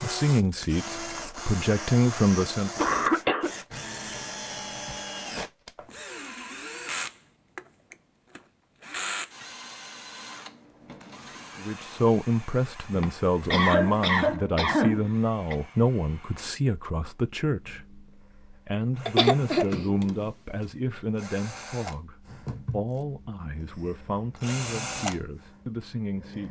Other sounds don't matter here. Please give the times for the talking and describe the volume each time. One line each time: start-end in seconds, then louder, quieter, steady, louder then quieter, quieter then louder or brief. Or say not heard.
0.0-2.7 brief
11.6-26.4 quieter.